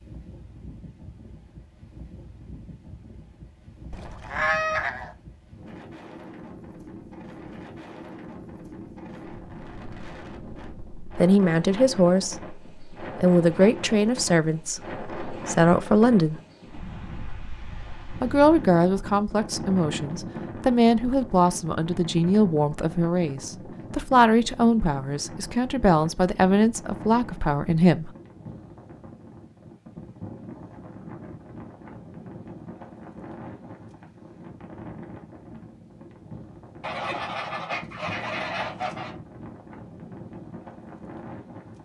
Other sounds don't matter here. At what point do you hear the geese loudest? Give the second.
5 s.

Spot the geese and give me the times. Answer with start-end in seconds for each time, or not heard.
3.9-5.2, 36.8-39.1.